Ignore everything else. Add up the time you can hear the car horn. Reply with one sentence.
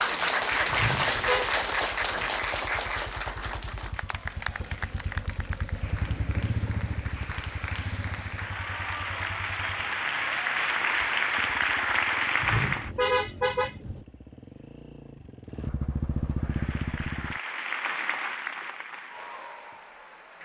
You can hear the car horn for 2 seconds altogether.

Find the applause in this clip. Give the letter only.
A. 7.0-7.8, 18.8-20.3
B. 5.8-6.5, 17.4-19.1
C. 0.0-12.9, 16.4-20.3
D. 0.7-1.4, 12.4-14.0
C.